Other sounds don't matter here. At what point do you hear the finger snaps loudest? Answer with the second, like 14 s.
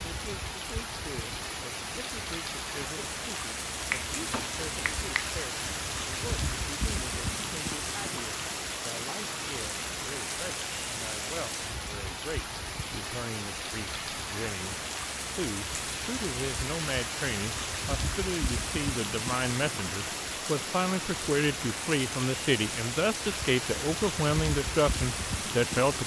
4 s.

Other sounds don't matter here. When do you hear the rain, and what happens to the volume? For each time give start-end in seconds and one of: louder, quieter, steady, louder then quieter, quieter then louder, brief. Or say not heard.
0.0-26.0 steady.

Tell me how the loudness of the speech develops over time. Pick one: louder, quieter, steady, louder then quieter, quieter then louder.
louder.